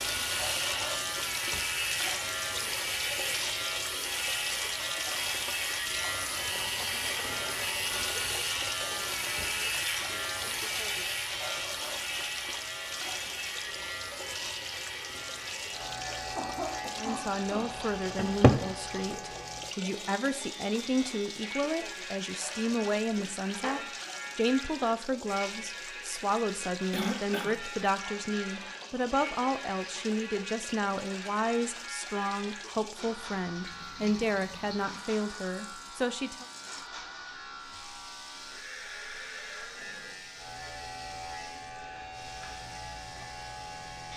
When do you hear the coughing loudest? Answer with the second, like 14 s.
27 s.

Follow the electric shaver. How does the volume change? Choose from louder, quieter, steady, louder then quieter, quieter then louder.
quieter.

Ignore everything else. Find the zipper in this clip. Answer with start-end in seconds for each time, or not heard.
not heard.